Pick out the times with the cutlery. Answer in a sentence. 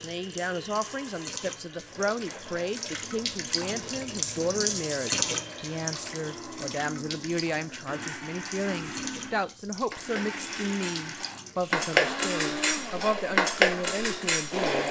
You can hear the cutlery from 8.6 to 14.8 s.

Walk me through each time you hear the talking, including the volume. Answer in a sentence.
The talking can be heard from 0.0 to 14.8 s, at a steady volume.